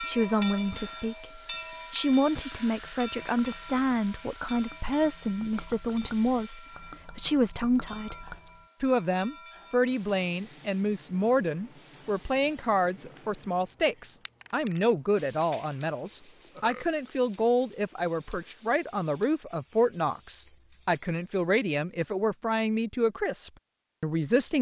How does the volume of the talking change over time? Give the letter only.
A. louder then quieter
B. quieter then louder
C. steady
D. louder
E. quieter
C.